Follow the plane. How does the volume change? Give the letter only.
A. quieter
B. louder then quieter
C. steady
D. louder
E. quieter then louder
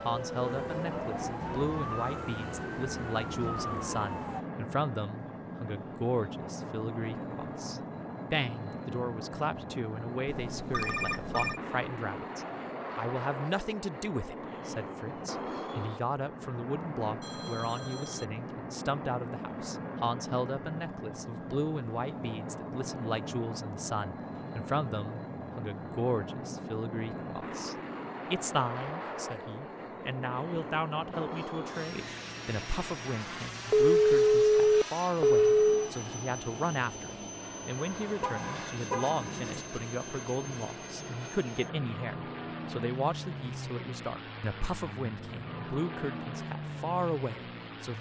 C.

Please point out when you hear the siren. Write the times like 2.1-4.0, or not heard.
0.0-4.5.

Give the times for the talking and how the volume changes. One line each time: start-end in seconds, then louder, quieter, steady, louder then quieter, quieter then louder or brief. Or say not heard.
0.1-47.9 steady.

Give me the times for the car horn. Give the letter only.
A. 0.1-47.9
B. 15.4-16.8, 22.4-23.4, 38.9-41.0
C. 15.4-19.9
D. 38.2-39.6
D.